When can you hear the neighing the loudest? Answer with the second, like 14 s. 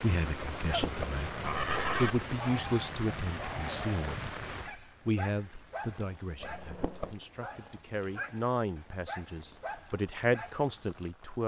2 s.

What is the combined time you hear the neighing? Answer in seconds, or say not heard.
2 s.